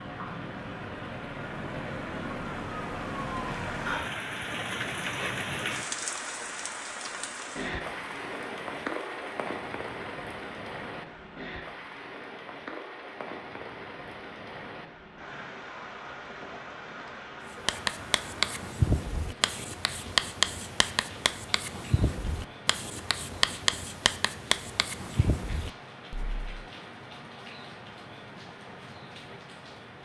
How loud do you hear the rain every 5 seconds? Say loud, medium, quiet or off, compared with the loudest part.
loud, loud, medium, medium, medium, medium.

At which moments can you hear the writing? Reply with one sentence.
The writing can be heard from 17.6 to 26.6 s.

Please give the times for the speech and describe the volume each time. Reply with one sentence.
The speech can't be heard in this clip.